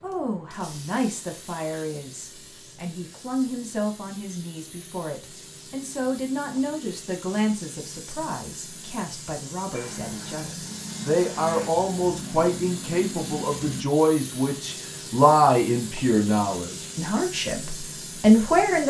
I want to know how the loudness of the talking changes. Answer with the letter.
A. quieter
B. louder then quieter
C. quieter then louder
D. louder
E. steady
D.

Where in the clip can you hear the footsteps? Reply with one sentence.
The footsteps can't be heard in this clip.